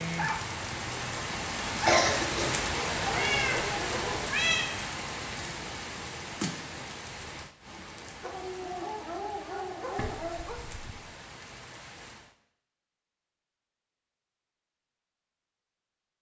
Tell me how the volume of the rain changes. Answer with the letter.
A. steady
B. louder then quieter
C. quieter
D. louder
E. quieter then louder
C.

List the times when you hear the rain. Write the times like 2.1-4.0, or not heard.
0.0-12.3.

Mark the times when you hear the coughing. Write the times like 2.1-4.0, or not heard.
1.7-2.6.